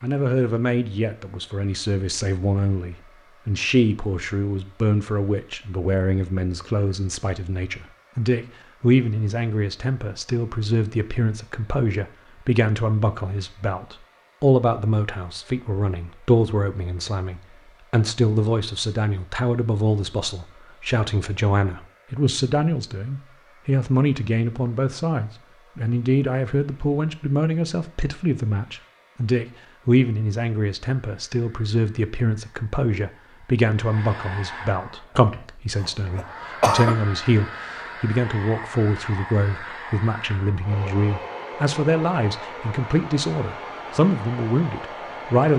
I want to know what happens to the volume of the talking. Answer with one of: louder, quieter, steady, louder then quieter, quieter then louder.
steady.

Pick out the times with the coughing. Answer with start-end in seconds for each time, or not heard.
35.8-37.0.